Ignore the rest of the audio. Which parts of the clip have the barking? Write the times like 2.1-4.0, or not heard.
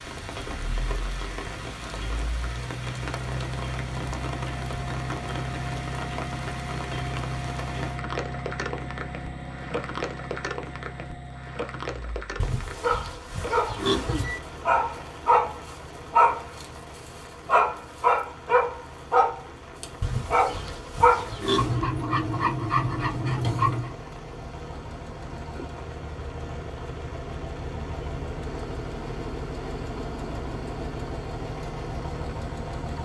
12.8-23.9.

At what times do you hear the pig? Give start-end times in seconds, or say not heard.
12.4-14.4, 20.0-21.9.